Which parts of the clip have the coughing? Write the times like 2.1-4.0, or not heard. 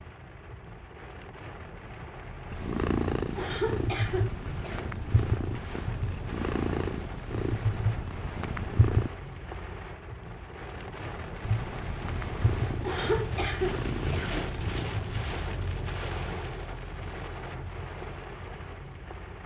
3.4-4.8, 12.8-14.4.